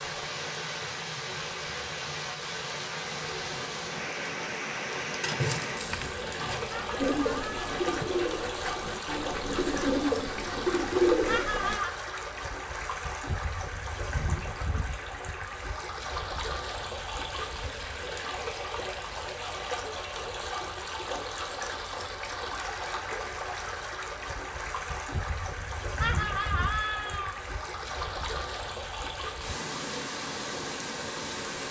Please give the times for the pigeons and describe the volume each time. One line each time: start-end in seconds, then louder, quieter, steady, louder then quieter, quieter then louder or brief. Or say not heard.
7.0-11.8 louder.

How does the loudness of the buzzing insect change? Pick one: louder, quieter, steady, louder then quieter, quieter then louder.
louder then quieter.